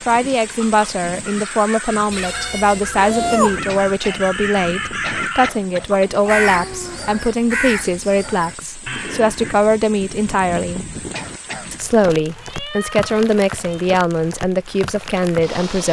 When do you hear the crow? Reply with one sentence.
The crow can be heard from 0.6 to 9.6 s.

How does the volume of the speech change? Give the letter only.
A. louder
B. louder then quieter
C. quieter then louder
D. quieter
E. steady
E.